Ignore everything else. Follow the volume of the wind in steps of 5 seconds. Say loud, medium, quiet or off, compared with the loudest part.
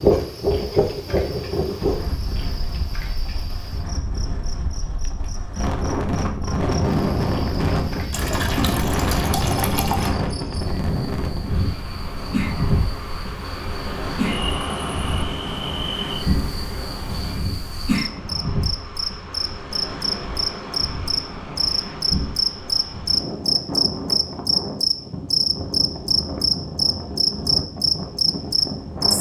loud, loud, loud, medium, medium, medium.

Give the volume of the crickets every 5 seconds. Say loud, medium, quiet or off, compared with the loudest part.
quiet, quiet, quiet, medium, loud, loud.